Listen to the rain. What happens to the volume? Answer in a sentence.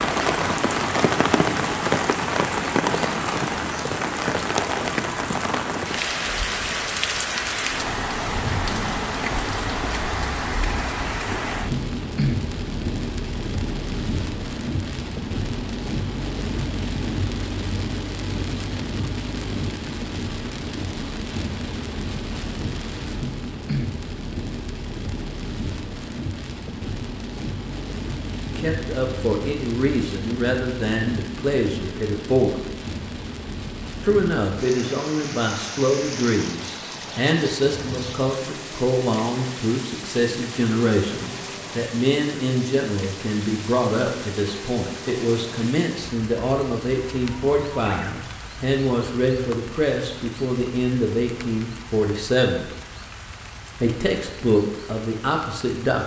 The loudness of the rain goes down.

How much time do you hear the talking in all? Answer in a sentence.
You can hear the talking for 25 seconds altogether.